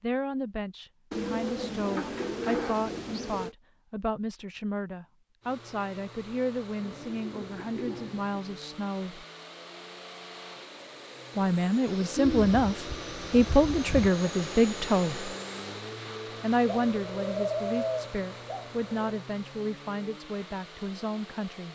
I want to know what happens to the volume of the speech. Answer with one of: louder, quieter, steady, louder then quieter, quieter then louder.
louder then quieter.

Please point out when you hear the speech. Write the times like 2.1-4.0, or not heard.
0.0-9.2, 11.3-15.3, 16.4-21.6.